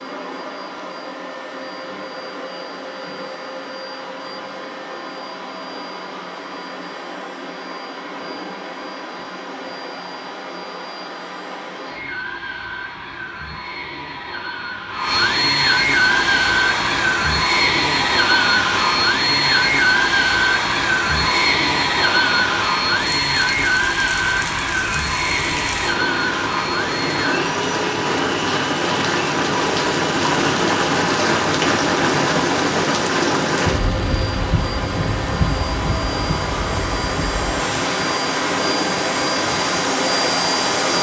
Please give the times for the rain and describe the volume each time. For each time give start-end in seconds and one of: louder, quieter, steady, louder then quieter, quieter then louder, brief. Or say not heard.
16.1-40.9 louder then quieter.